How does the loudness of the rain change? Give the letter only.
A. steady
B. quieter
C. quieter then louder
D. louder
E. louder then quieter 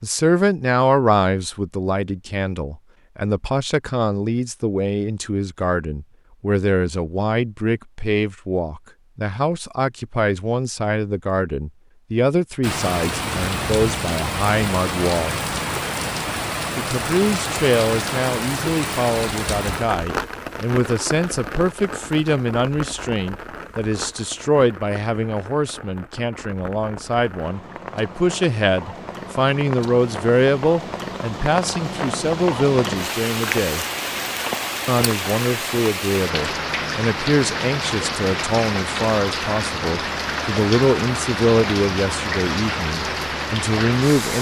C.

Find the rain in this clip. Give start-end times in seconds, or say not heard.
12.6-44.3.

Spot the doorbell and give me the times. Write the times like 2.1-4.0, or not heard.
not heard.